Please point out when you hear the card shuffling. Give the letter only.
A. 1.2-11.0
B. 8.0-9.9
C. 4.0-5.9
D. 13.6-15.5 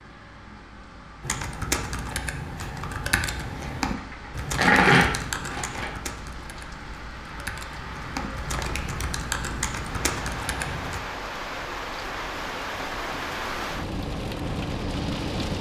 C.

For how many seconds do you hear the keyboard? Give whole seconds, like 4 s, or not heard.
10 s.